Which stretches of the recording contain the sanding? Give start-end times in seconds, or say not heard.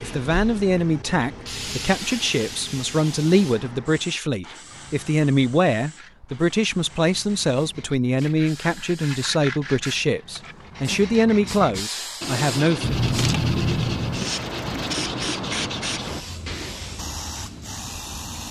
5.8-16.9.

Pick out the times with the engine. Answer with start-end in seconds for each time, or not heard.
12.8-14.9.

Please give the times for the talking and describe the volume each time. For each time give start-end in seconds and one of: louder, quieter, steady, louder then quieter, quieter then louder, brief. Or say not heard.
0.0-12.9 steady.